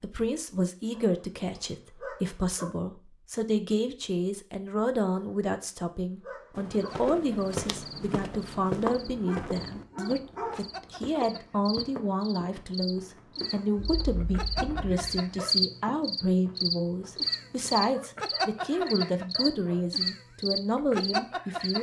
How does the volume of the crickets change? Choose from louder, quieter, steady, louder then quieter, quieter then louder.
louder.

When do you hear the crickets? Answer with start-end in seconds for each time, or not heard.
6.7-21.7.